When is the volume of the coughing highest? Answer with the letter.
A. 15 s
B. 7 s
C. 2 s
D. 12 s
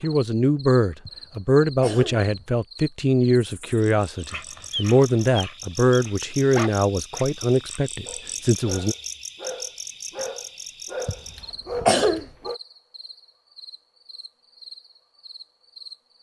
D.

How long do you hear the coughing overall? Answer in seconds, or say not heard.
3 s.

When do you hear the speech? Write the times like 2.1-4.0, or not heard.
0.0-8.9.